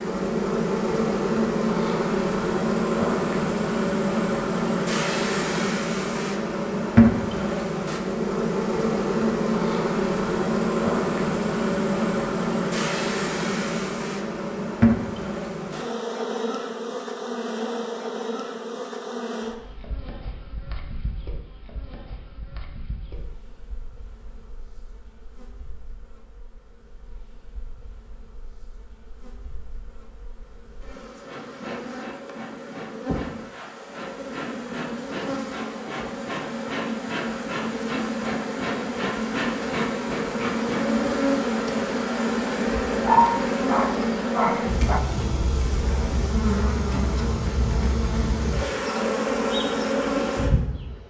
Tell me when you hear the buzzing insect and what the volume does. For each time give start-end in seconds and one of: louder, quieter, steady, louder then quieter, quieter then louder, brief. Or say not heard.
0.0-51.0 quieter then louder.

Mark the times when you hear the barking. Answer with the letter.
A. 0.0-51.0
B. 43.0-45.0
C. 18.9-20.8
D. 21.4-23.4
B.